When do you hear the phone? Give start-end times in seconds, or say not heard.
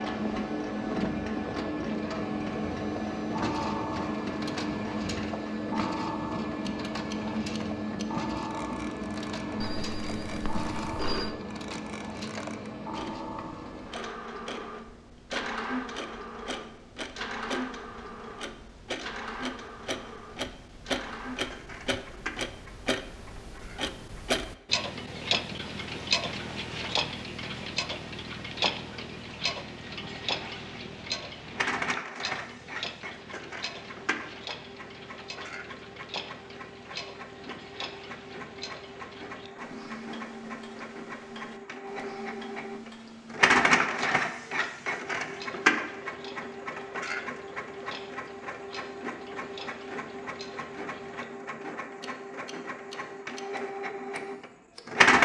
9.6-11.3.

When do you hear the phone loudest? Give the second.
11 s.